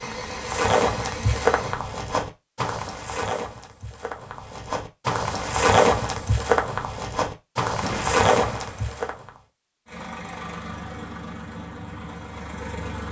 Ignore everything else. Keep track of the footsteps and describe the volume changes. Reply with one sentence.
The loudness of the footsteps goes down, then up.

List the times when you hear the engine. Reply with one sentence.
The engine can be heard from 0.0 to 1.8 s and from 9.8 to 13.0 s.